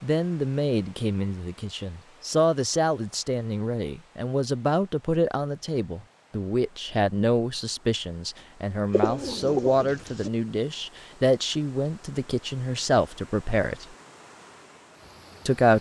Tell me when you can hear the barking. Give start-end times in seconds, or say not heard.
not heard.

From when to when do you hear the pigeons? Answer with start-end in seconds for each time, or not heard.
8.9-10.3.